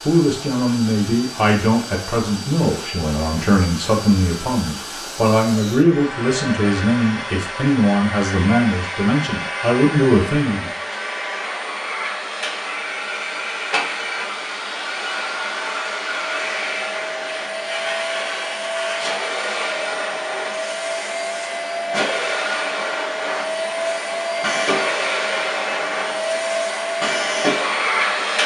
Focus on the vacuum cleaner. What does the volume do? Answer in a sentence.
The loudness of the vacuum cleaner goes up.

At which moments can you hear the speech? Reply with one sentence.
You can hear the speech from 0.1 to 10.7 s.